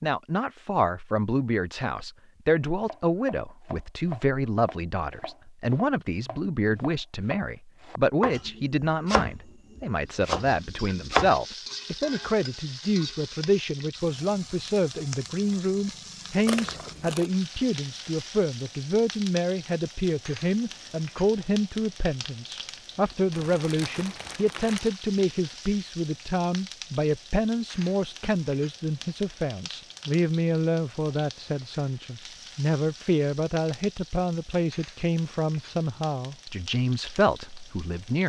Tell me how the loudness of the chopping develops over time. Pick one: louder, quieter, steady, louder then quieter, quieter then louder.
quieter then louder.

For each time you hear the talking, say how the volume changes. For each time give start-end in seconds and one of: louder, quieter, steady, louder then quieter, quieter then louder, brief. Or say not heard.
0.0-38.2 steady.